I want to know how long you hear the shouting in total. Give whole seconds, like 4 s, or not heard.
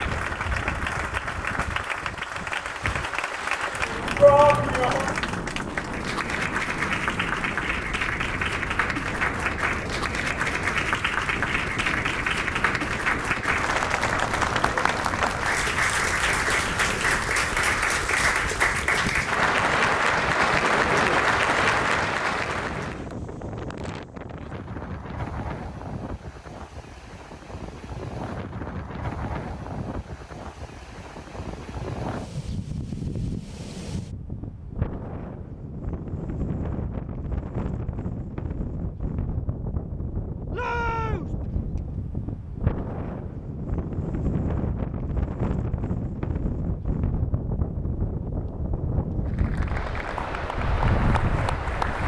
2 s.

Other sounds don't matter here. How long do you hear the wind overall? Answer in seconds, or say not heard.
52 s.